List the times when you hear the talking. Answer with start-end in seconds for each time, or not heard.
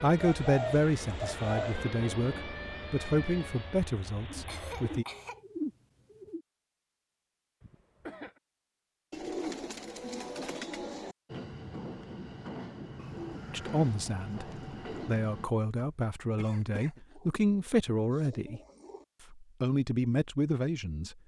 0.0-5.0, 13.5-14.4, 15.1-18.6, 19.3-21.1.